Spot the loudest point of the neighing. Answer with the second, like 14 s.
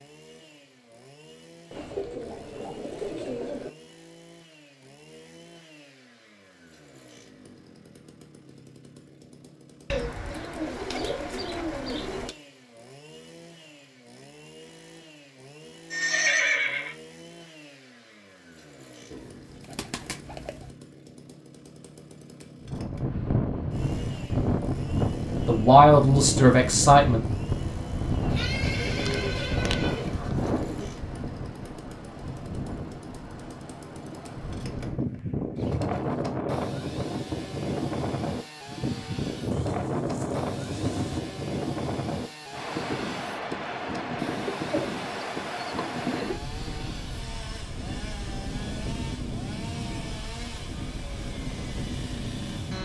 16 s.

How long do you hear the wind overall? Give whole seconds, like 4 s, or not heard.
30 s.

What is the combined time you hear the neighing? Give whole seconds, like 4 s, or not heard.
3 s.